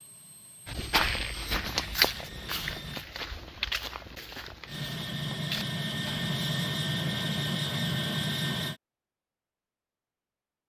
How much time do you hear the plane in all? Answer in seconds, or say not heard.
7 s.